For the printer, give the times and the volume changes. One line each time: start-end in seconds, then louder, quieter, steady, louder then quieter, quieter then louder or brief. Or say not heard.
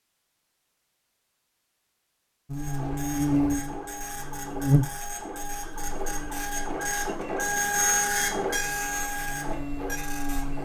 2.5-10.6 louder then quieter.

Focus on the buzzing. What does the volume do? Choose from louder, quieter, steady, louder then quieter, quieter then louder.
quieter then louder.